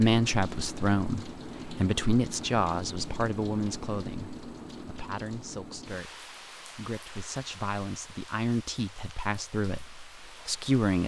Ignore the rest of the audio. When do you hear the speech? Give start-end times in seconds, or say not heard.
0.0-11.0.